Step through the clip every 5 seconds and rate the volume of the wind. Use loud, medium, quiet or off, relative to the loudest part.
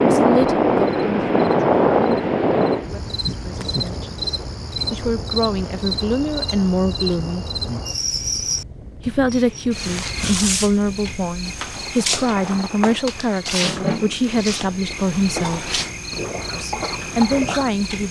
loud, quiet, quiet, quiet.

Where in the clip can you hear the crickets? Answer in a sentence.
The crickets can be heard from 0.1 to 18.0 s.